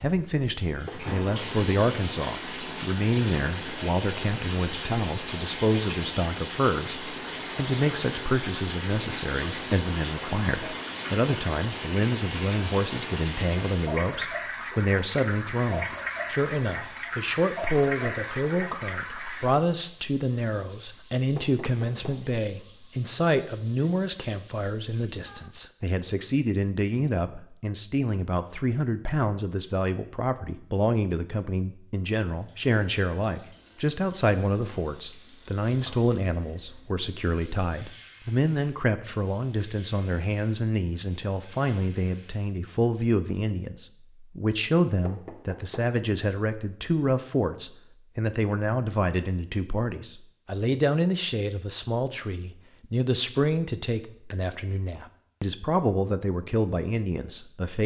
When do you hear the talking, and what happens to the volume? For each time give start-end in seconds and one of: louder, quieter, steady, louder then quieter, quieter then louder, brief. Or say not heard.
0.0-57.8 steady.